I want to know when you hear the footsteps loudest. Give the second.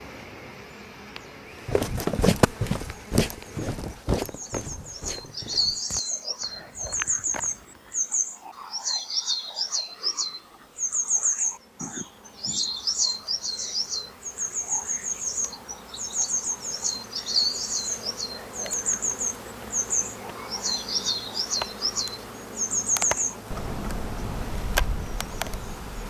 2 s.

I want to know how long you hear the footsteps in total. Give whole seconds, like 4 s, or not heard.
6 s.